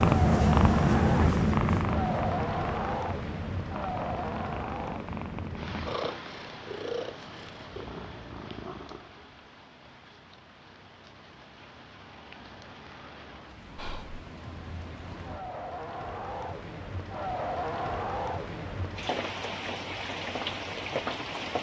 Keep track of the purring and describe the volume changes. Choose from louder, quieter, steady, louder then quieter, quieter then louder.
quieter.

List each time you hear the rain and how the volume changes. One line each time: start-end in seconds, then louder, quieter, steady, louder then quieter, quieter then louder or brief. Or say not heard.
0.0-21.5 quieter then louder.